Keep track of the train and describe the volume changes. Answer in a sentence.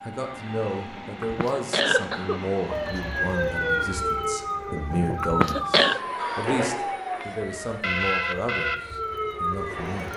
The volume of the train goes up.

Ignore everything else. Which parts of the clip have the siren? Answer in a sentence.
The siren can be heard from 2.7 to 10.1 s.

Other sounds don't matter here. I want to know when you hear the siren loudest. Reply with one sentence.
The loudest moment of the siren is at 4 seconds.